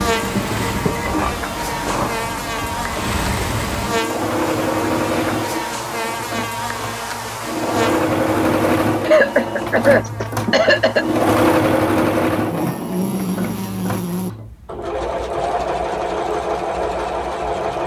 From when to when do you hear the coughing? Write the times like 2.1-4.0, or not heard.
9.1-11.1.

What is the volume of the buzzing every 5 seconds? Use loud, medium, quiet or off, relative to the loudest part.
loud, loud, loud, off.